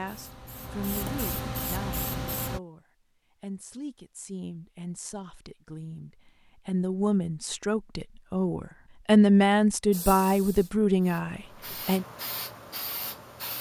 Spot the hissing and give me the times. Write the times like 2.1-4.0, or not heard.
0.0-2.6, 9.9-13.5.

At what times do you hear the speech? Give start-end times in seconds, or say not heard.
0.0-12.1.